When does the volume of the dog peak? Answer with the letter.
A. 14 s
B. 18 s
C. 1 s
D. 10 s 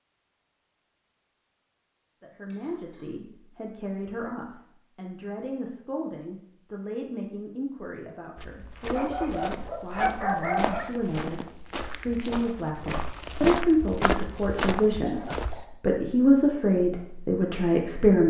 D.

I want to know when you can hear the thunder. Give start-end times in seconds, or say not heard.
not heard.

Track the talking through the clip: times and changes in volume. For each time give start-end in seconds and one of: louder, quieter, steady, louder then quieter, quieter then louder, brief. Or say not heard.
2.2-18.2 louder.